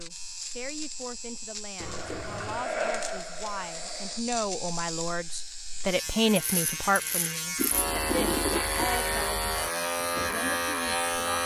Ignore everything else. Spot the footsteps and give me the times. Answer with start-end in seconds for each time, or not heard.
not heard.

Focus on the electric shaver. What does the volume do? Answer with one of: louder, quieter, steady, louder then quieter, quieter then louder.
louder.